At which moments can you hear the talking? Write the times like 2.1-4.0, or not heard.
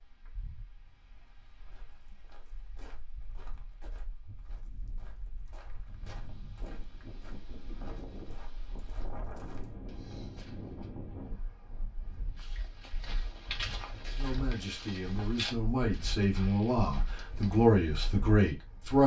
14.1-19.0.